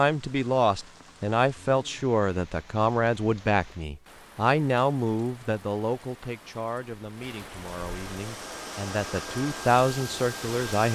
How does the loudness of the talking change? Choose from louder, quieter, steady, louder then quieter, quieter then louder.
quieter then louder.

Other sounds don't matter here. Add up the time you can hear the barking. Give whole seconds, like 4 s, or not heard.
not heard.